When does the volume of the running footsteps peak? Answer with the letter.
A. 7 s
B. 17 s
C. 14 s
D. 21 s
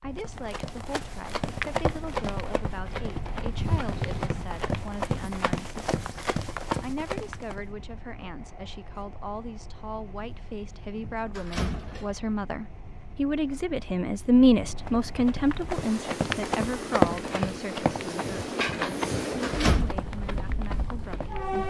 B.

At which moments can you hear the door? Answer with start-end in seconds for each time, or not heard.
3.5-4.4, 10.2-12.2, 18.2-19.9.